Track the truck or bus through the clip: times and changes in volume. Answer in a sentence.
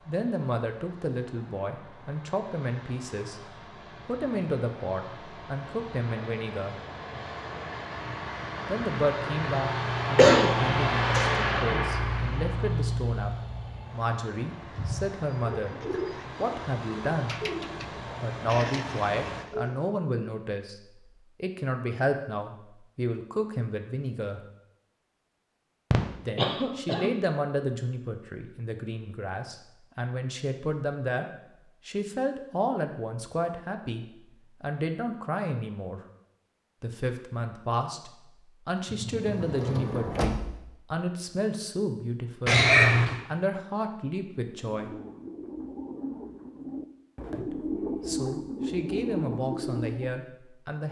The truck or bus can be heard from 0.0 to 19.4 s, getting louder then quieter.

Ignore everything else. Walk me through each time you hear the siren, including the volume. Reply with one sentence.
The siren can't be heard in this clip.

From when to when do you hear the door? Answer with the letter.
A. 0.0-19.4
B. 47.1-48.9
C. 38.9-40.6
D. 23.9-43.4
C.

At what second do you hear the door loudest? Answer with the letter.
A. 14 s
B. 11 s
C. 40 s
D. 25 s
C.